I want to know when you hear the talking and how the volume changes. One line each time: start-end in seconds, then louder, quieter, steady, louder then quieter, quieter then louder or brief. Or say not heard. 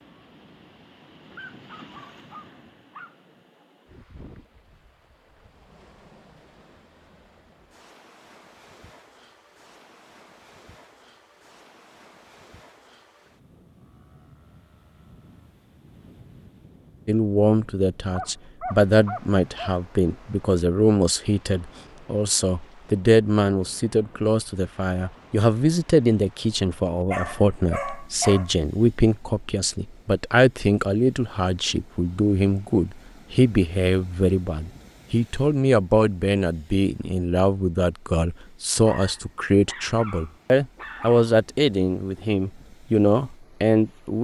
17.1-44.1 steady.